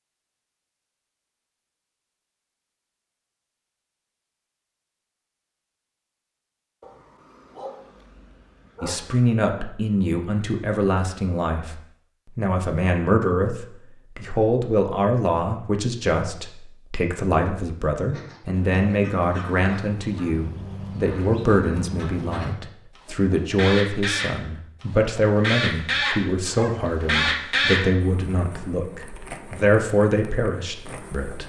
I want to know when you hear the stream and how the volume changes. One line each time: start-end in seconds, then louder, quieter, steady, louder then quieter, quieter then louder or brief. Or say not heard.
not heard.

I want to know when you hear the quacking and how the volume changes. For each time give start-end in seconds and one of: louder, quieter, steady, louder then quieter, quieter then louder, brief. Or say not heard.
18.1-27.9 louder.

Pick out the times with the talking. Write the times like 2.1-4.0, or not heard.
8.8-31.4.